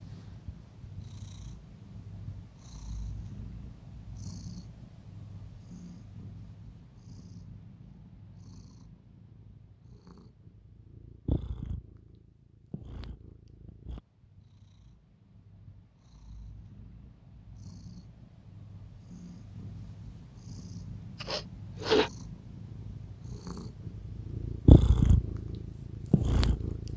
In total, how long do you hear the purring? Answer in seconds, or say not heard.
27 s.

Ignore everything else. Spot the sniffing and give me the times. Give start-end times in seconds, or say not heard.
21.2-22.1.